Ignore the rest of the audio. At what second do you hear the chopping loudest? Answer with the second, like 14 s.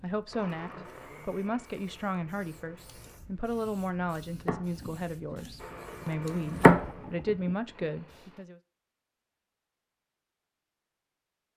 7 s.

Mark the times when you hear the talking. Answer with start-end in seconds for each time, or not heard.
0.0-8.6.